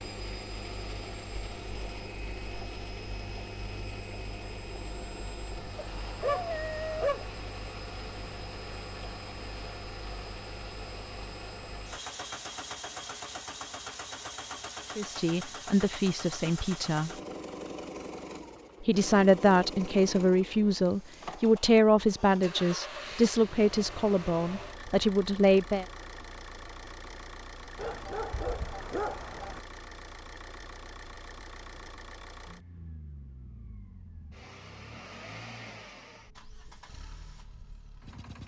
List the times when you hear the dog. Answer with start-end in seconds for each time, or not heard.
5.8-7.3, 27.8-29.6.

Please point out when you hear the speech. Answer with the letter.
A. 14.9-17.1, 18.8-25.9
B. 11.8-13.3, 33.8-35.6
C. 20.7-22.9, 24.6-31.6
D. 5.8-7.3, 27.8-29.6
A.